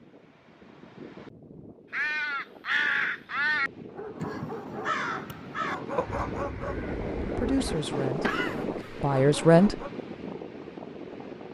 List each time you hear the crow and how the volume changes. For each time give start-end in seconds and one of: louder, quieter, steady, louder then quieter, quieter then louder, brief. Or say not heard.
1.9-7.8 quieter.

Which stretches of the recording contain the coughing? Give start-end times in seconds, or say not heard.
8.2-9.1.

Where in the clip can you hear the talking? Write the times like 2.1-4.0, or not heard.
7.3-9.8.